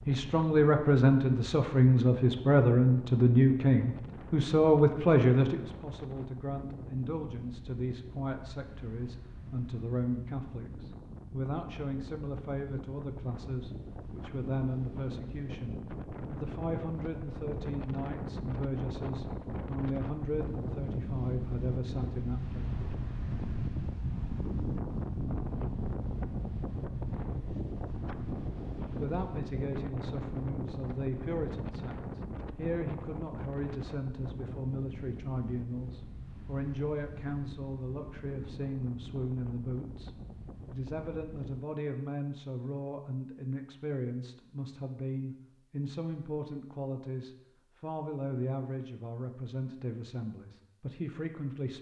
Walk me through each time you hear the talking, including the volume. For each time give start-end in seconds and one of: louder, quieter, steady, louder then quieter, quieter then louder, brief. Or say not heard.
0.1-22.7 quieter
28.9-51.7 steady.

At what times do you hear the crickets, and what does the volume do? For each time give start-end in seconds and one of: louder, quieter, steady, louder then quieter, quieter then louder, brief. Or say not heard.
not heard.